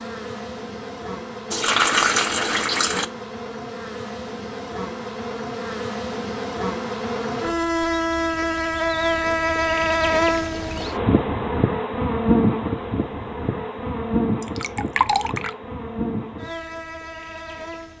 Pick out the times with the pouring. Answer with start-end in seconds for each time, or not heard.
1.5-3.0, 14.4-15.5.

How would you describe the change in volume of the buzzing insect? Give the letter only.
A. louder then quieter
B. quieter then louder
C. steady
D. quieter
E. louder
A.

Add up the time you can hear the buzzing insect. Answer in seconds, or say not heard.
18 s.